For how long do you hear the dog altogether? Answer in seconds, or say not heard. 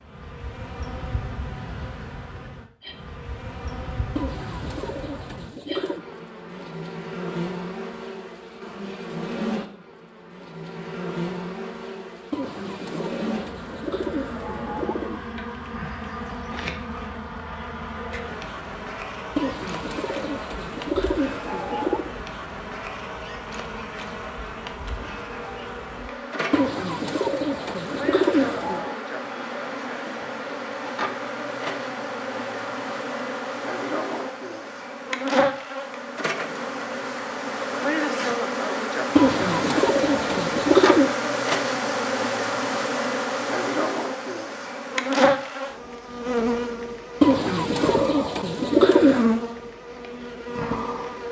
not heard.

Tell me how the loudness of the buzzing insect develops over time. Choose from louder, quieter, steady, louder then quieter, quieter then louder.
louder.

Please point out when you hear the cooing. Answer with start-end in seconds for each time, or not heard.
4.2-6.0, 12.3-15.2, 19.4-22.1, 26.5-28.9, 39.1-41.1, 47.2-49.3.